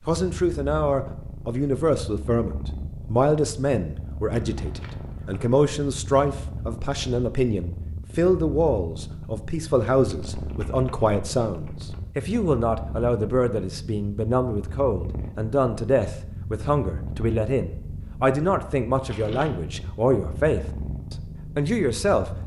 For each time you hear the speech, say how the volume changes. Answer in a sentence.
You can hear the speech from 0.1 to 22.4 s, at a steady volume.